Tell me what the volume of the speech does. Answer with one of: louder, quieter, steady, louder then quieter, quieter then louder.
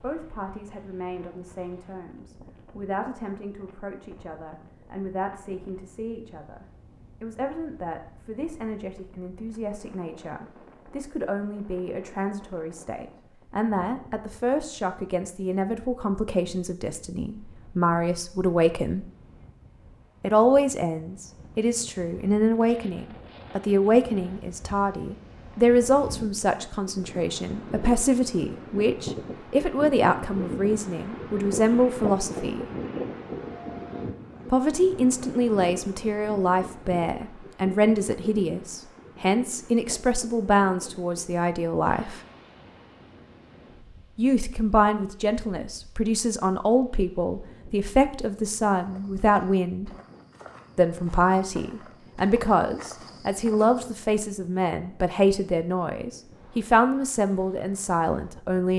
louder.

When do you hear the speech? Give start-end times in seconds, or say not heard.
0.0-19.1, 20.2-32.6, 34.5-42.2, 44.1-49.9, 50.8-58.7.